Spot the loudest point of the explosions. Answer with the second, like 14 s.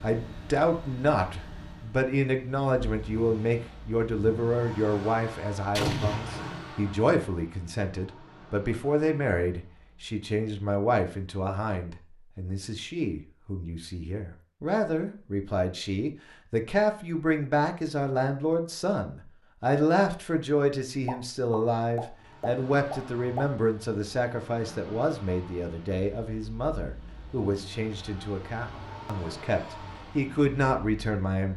6 s.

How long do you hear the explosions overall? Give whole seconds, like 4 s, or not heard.
3 s.